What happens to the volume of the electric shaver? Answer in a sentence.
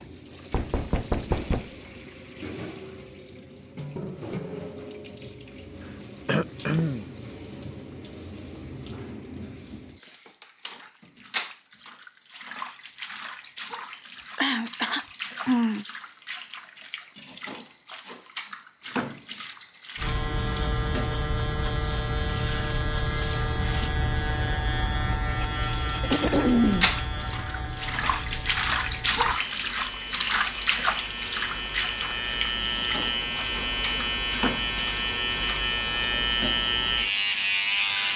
The volume of the electric shaver goes down, then up.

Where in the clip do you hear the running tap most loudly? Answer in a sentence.
The loudest moment of the running tap is at 29 seconds.